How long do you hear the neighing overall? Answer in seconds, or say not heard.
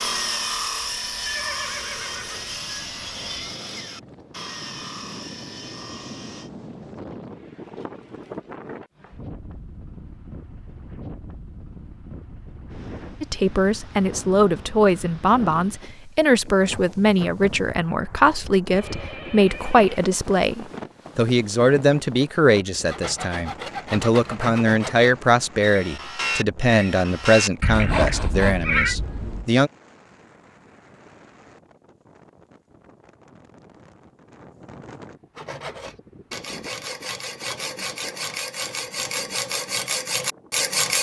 4 s.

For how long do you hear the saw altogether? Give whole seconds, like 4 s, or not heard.
19 s.